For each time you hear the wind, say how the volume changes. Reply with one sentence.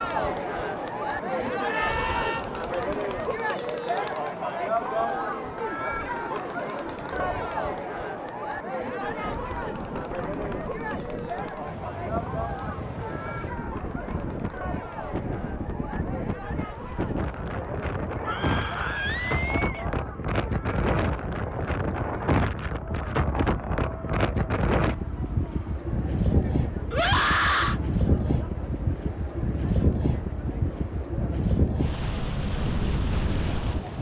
You can hear the wind from 9.0 to 33.9 s, getting louder.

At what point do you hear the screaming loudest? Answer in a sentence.
The volume of the screaming peaks at 27 seconds.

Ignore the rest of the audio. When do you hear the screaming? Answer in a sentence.
You can hear the screaming from 1.6 to 2.5 s, from 18.2 to 19.9 s and from 26.9 to 27.8 s.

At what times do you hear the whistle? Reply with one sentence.
You can't hear the whistle here.